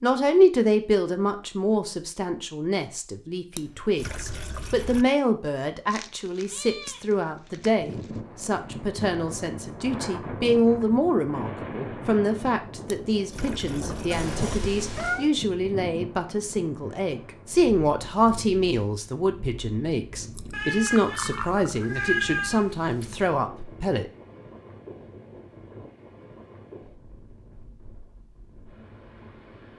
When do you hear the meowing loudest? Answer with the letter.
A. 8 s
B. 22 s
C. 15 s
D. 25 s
B.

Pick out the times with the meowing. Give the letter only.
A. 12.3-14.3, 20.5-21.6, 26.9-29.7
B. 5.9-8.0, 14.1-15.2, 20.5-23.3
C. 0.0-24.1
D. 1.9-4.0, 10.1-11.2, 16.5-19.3
B.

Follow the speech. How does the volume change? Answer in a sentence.
The volume of the speech stays about the same.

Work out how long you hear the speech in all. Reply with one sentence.
You can hear the speech for 24 seconds altogether.